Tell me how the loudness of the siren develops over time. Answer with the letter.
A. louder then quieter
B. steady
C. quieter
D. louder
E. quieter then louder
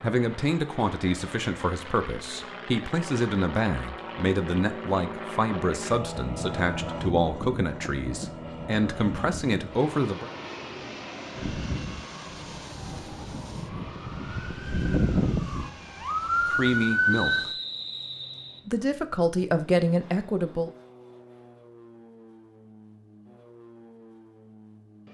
D.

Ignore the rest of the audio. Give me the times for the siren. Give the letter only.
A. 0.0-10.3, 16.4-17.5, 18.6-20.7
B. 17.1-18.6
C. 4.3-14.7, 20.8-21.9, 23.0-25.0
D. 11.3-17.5
D.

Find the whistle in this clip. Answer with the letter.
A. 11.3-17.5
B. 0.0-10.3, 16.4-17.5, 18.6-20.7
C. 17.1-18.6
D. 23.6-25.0
C.